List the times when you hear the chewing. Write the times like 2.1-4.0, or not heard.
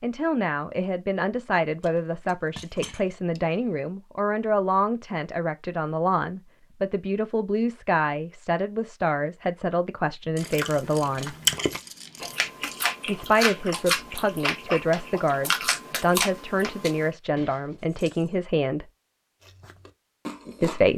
10.4-17.1, 19.4-20.9.